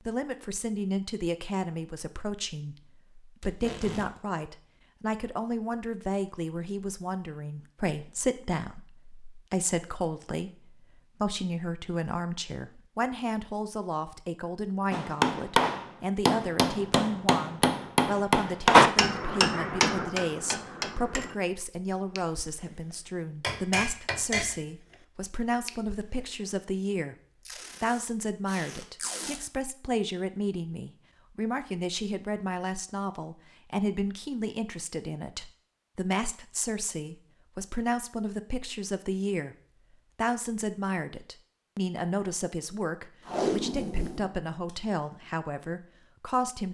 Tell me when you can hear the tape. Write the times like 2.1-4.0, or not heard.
3.4-4.2, 27.4-29.4, 43.2-45.1.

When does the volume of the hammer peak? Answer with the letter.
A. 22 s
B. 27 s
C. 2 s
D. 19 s
D.